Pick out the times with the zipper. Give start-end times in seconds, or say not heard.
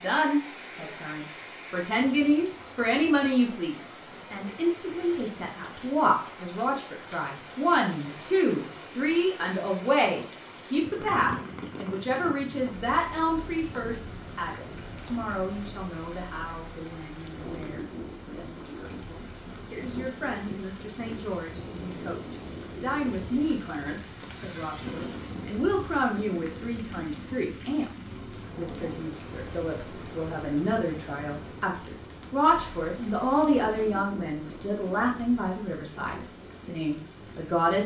24.2-25.4.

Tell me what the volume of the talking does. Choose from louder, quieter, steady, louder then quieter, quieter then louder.
quieter then louder.